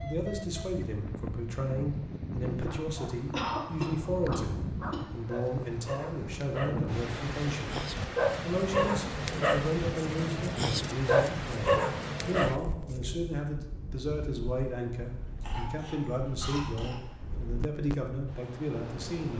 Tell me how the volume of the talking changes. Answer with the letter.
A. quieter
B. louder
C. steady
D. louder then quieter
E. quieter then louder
C.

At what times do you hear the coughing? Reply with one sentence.
The coughing can be heard from 3.3 to 5.0 s and from 15.4 to 17.0 s.